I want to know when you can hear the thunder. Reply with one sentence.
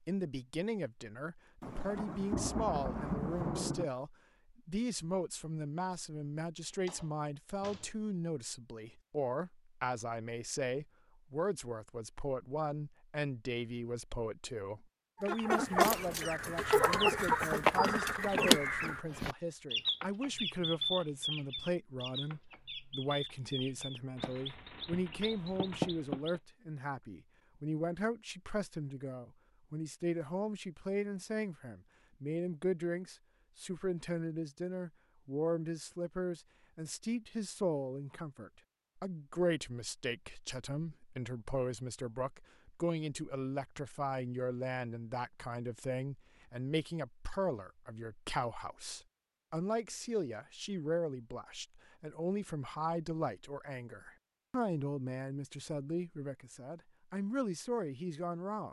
The thunder can be heard from 1.6 to 3.9 s.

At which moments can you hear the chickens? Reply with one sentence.
The chickens can be heard from 15.2 to 26.4 s.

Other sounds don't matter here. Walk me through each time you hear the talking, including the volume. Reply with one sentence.
The talking can be heard from 0.1 to 58.6 s, at a steady volume.